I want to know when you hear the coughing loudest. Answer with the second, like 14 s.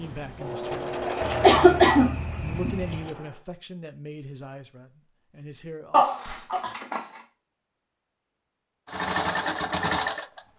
2 s.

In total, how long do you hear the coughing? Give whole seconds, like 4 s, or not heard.
3 s.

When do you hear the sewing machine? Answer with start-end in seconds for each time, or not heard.
0.0-3.5, 8.8-10.4.